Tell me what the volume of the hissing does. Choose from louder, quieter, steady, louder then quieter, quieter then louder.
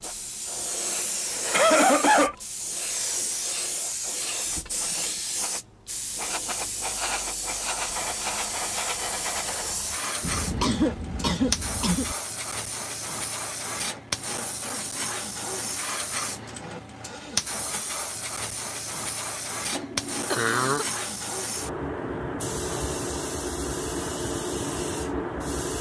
steady.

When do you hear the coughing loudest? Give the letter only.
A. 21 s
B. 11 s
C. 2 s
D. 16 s
C.